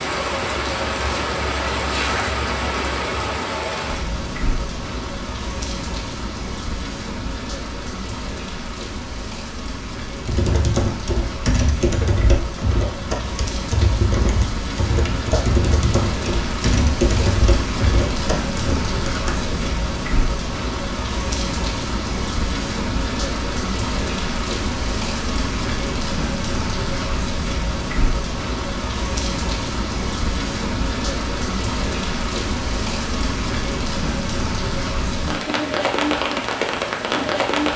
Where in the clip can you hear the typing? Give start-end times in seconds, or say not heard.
10.2-19.8.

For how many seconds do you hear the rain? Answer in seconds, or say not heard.
38 s.